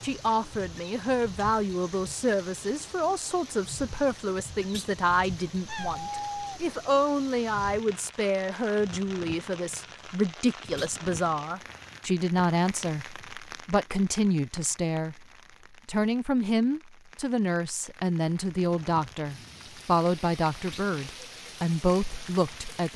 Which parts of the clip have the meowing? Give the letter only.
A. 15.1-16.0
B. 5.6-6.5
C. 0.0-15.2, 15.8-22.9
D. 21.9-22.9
B.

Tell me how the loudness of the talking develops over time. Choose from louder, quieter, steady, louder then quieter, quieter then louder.
steady.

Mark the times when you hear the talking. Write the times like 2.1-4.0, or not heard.
0.0-15.2, 15.8-22.9.